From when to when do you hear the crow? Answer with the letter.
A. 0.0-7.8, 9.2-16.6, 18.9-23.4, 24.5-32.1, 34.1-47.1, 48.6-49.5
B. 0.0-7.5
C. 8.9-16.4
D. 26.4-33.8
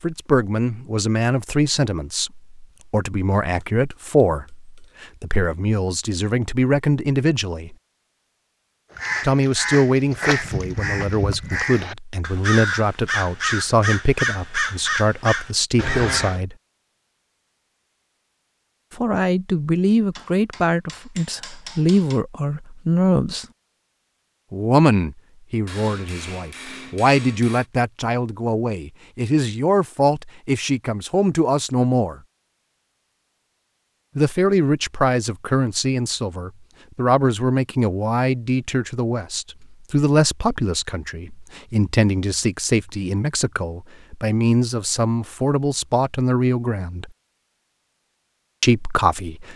C.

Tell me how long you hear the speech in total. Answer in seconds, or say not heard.
41 s.